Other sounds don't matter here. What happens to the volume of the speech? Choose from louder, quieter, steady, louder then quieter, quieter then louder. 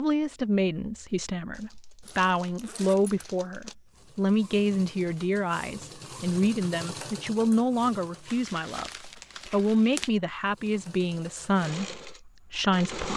steady.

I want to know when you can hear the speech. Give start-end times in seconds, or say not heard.
0.0-13.1.